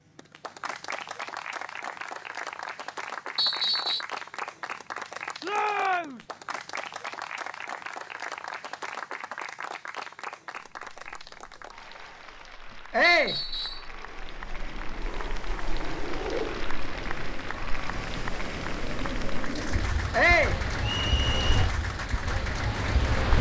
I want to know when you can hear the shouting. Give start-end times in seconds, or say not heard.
5.4-6.2, 12.9-13.4, 20.1-20.6.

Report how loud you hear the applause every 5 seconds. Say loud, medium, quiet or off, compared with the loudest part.
loud, loud, medium, loud, loud.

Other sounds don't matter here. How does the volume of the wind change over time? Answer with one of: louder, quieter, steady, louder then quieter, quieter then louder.
louder.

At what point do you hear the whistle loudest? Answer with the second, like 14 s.
4 s.